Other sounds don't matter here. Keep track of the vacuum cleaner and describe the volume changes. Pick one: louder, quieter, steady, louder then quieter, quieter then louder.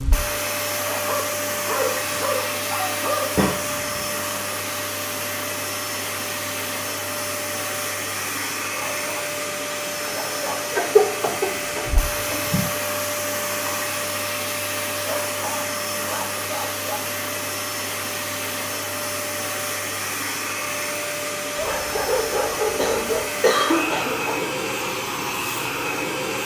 steady.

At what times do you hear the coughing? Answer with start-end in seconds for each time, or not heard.
3.4-4.0, 10.7-12.7, 22.7-24.4.